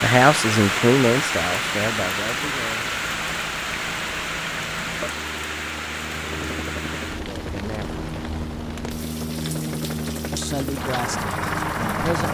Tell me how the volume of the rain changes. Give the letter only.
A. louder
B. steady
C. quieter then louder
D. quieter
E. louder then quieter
D.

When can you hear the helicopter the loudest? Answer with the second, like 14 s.
12 s.